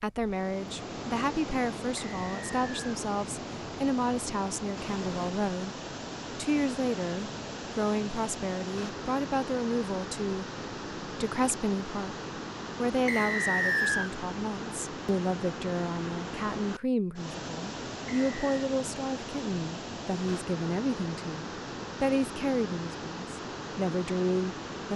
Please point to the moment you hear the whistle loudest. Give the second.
14 s.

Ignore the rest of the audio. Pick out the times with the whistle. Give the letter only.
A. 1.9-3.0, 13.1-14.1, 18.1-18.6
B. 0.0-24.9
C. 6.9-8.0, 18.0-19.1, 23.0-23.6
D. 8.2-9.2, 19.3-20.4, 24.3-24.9
A.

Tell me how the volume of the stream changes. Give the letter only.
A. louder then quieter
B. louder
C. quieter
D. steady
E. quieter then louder
D.